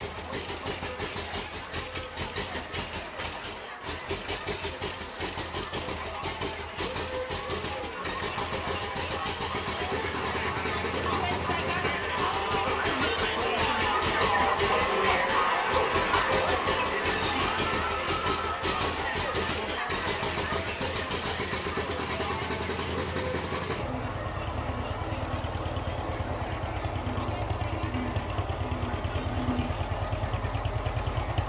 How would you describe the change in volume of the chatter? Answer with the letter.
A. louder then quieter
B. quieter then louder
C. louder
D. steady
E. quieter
A.